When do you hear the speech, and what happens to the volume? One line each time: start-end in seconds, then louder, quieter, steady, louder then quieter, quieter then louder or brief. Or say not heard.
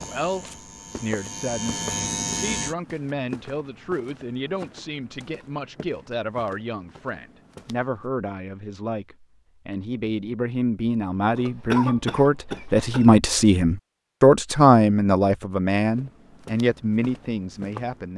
0.0-18.1 louder.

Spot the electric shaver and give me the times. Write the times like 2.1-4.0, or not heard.
0.0-2.8.